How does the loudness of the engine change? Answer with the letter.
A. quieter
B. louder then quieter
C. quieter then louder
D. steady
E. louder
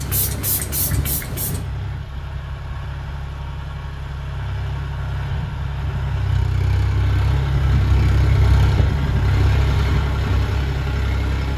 E.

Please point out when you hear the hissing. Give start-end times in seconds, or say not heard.
0.0-1.6.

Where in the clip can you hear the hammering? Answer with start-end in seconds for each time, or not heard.
not heard.